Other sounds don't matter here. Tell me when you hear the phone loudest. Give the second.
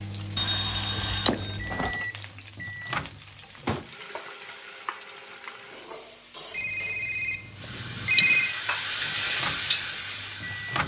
8 s.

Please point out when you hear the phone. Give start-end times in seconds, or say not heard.
0.3-1.9, 6.5-8.6.